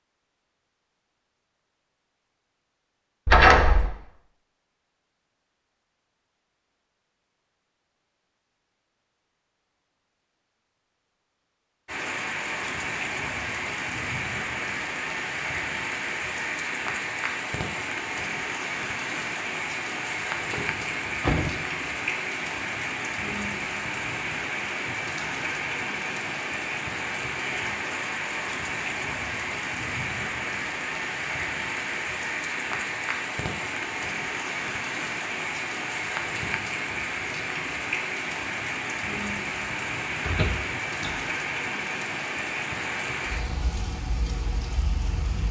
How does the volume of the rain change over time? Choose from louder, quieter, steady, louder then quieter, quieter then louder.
steady.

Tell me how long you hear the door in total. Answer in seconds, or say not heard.
3 s.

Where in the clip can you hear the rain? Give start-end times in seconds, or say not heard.
11.8-45.4.